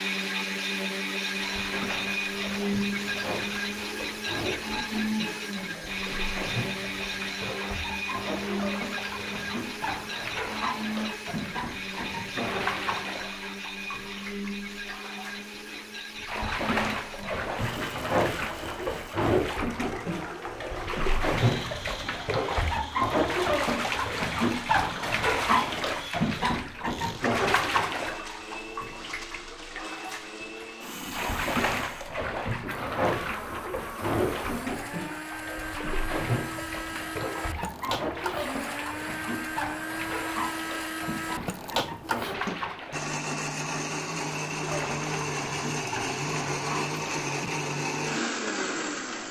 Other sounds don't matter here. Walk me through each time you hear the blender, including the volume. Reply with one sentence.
The blender can be heard from 0.0 to 49.2 s, getting quieter then louder.